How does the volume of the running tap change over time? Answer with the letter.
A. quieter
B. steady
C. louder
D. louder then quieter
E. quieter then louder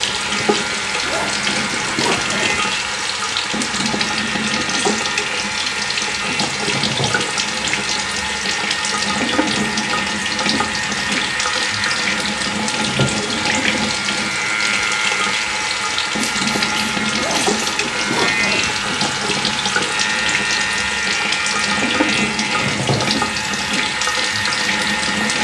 B.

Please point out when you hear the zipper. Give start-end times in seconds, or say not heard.
1.0-2.9, 17.1-18.9.